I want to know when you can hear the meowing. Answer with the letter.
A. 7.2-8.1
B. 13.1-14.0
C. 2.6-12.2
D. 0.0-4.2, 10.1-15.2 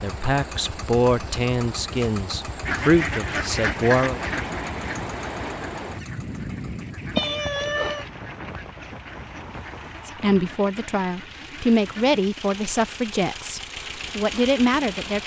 A.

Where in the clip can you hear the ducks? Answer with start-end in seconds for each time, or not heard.
2.6-12.2.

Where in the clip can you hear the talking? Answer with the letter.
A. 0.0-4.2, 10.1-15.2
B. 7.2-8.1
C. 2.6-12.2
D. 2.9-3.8
A.